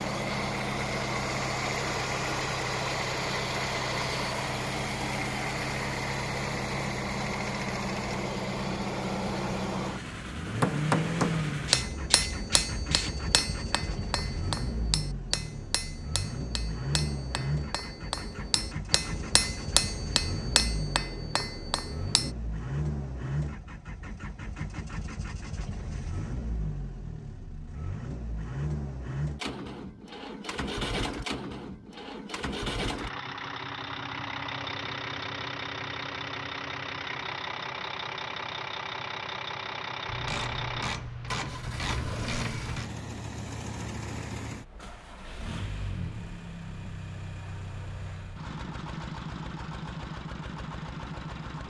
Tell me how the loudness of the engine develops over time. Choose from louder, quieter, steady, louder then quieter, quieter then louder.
quieter.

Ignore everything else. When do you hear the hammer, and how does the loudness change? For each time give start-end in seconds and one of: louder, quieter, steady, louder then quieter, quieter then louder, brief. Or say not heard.
10.4-22.3 quieter then louder.